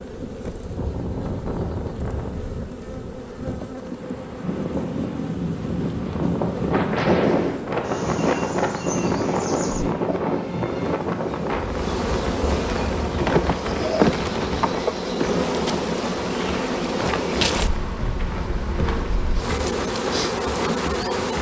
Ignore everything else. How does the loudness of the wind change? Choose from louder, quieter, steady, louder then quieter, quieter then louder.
louder then quieter.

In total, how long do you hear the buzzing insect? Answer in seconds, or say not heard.
21 s.